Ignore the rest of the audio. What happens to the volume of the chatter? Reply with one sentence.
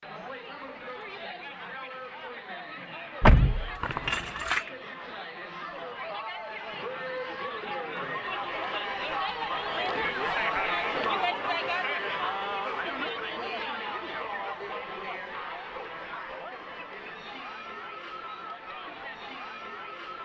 The volume of the chatter goes up, then down.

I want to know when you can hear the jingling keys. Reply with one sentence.
You can hear the jingling keys from 3.2 to 4.7 s.